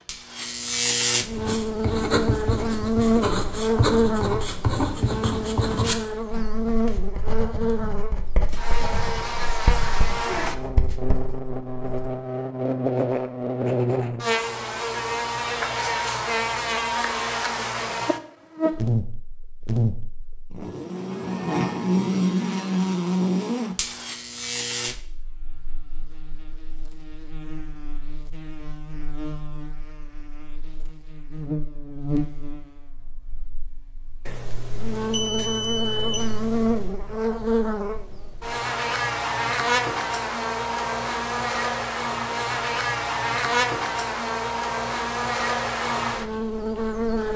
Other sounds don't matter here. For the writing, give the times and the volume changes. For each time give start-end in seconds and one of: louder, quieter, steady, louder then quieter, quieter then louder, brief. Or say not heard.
1.3-12.1 quieter.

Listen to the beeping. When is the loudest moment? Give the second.
35 s.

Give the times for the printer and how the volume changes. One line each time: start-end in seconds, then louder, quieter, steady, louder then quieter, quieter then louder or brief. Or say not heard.
not heard.